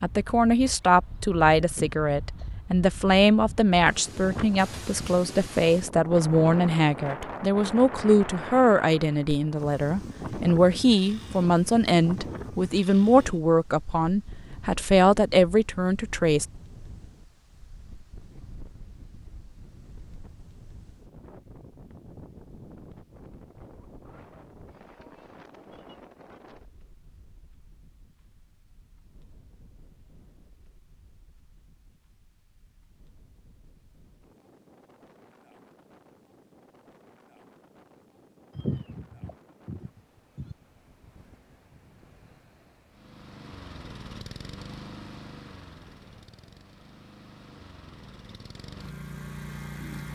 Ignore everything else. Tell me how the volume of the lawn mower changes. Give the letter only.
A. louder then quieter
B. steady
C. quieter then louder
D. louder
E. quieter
C.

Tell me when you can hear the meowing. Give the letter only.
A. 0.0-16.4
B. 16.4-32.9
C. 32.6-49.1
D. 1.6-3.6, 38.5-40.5
D.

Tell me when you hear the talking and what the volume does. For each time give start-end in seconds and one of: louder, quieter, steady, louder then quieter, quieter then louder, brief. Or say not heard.
0.0-16.4 steady.